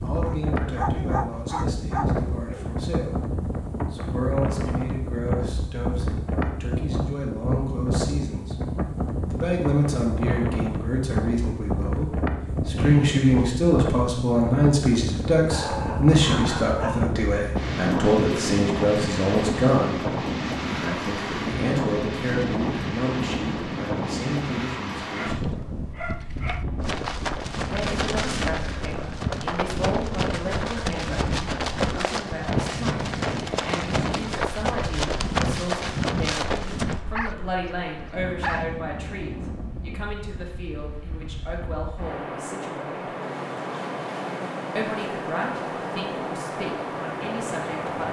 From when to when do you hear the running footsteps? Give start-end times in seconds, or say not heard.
26.8-37.0.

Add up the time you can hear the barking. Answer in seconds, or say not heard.
7 s.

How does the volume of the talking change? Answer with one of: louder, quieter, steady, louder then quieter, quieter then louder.
louder then quieter.